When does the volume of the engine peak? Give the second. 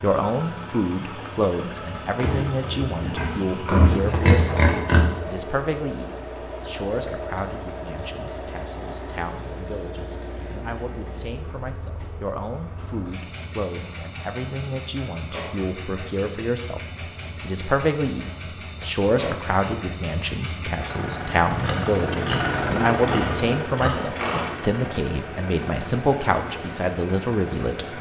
23 s.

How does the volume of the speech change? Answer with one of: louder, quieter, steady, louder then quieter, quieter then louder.
quieter then louder.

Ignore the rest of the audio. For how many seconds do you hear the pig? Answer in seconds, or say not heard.
6 s.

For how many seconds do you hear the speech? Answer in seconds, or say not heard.
27 s.